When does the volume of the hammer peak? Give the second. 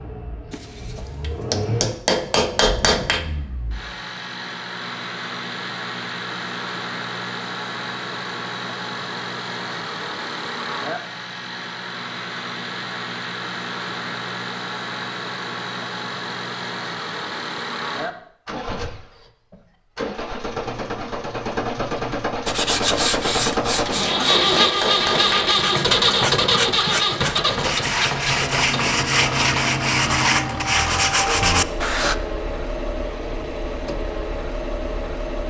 3 s.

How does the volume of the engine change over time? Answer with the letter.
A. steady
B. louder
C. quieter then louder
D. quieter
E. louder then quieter
E.